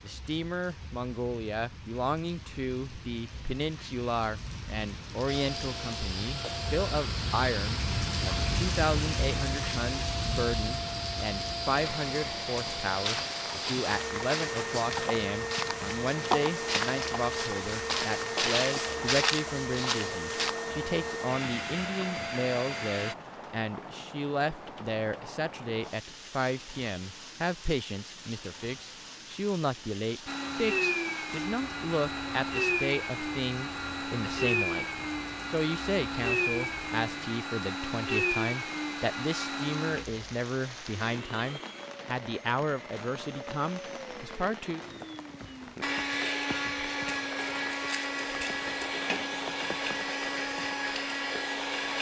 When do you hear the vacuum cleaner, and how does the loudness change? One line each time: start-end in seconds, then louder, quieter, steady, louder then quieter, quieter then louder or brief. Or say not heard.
5.2-23.1 steady
30.2-51.9 quieter then louder.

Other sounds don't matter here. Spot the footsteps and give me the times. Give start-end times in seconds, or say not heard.
12.9-20.6.